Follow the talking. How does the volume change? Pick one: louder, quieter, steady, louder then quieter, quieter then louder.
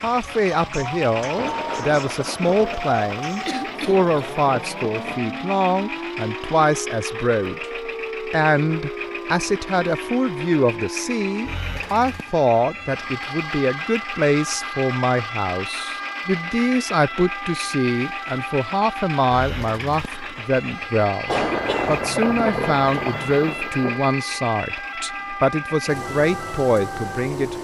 steady.